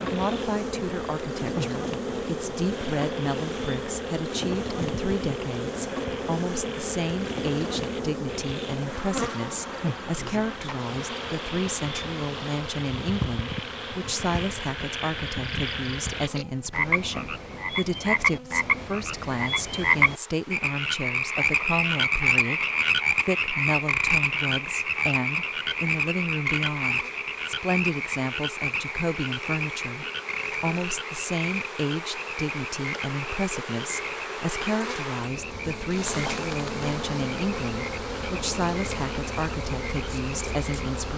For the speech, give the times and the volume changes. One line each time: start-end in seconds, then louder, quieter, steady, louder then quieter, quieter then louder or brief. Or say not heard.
0.0-41.1 steady.